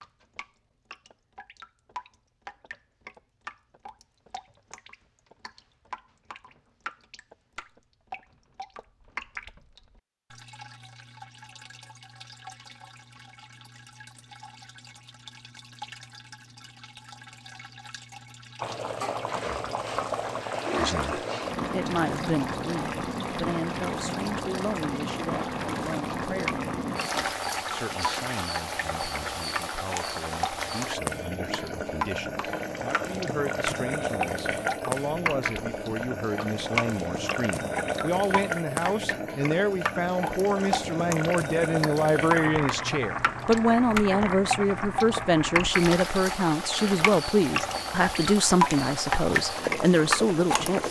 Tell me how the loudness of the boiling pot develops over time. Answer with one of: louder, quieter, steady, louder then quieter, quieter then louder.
steady.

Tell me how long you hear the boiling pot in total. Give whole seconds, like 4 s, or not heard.
32 s.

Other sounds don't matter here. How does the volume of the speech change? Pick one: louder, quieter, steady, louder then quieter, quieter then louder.
quieter then louder.